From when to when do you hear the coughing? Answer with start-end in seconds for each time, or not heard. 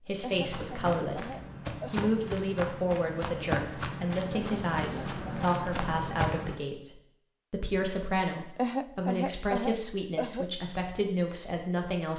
0.2-2.1, 4.3-5.5, 8.6-10.5.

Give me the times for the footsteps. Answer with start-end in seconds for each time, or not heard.
0.3-6.5.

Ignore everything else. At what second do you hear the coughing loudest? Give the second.
9 s.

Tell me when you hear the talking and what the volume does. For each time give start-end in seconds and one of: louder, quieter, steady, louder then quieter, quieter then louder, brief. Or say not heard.
0.1-12.1 steady.